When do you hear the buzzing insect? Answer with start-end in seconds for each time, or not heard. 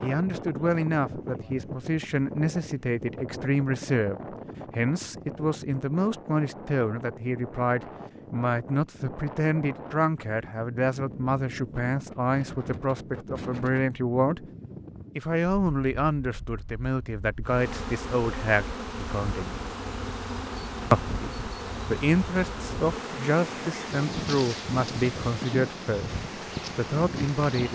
17.4-27.7.